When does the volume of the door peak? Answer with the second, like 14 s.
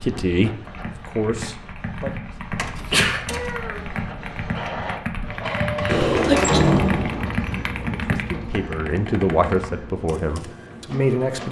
7 s.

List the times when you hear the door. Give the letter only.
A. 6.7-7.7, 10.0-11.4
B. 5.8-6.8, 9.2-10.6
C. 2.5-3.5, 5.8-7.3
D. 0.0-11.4
C.